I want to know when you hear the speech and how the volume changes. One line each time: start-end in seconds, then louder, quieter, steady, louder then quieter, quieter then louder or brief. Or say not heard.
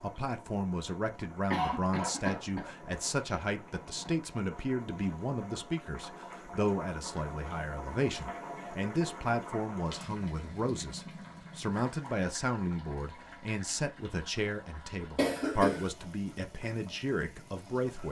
0.0-18.0 steady.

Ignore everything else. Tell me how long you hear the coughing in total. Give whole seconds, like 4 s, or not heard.
3 s.